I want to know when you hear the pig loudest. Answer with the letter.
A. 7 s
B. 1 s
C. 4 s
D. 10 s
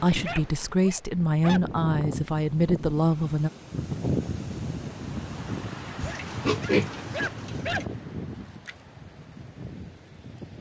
A.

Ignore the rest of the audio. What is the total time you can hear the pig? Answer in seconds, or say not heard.
2 s.